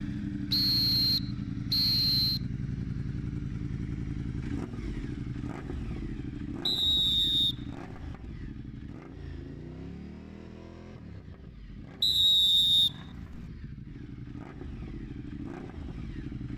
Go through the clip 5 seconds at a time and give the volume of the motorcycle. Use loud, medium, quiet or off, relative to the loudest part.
loud, medium, medium, medium.